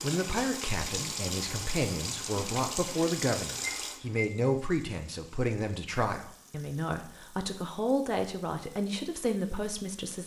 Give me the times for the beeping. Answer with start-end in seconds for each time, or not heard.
3.6-4.3.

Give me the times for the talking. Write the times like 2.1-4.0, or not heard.
0.0-10.2.